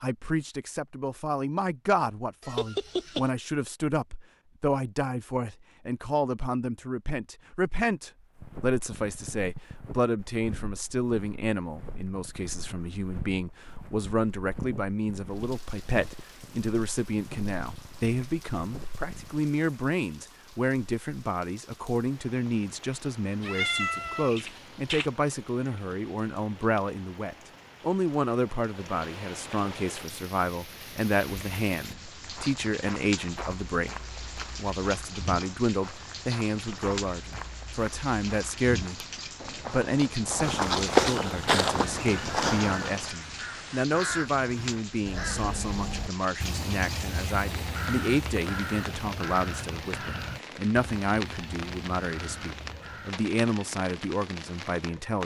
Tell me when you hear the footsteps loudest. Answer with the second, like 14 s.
41 s.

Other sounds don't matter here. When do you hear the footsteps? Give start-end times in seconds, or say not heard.
8.2-19.4, 31.9-43.1.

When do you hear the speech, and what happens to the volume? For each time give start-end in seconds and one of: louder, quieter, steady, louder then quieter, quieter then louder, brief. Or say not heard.
0.0-39.0 steady
39.6-55.2 steady.